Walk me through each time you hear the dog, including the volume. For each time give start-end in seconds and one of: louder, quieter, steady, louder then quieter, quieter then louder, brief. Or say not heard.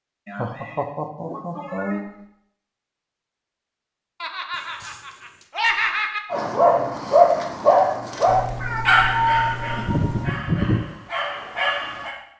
6.3-12.2 quieter then louder.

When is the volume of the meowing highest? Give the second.
9 s.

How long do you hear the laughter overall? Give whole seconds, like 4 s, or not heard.
5 s.